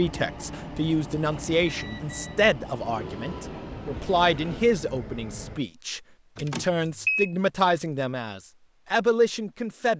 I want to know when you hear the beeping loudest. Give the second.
7 s.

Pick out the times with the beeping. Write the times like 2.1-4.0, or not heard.
1.6-2.4, 6.3-7.3.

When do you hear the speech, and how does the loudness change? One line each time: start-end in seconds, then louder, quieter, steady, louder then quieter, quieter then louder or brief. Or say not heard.
0.0-9.9 steady.